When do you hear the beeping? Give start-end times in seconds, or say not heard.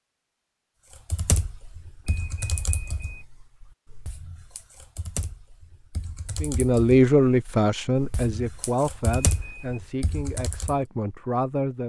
2.0-3.2, 9.2-9.8.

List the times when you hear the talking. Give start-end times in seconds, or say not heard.
6.4-11.8.